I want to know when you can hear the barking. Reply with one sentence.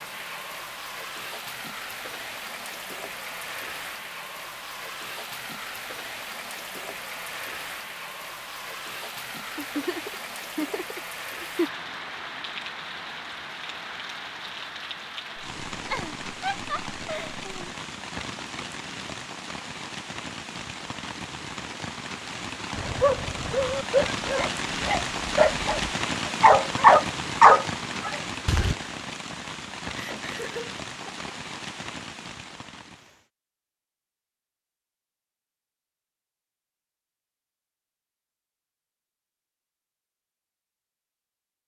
You can hear the barking from 22.8 to 28.8 s.